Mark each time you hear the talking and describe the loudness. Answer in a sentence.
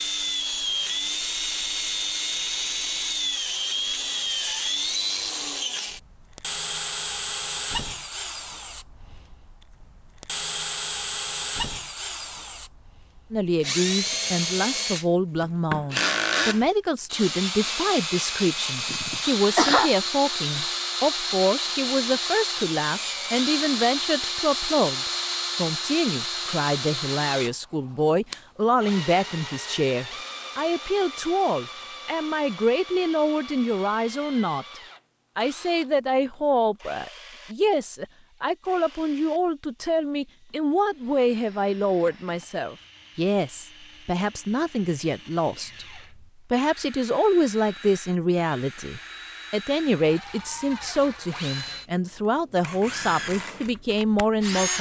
The talking can be heard from 13.3 to 54.7 s, at a steady volume.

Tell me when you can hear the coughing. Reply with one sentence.
You can hear the coughing from 18.9 to 20.0 s.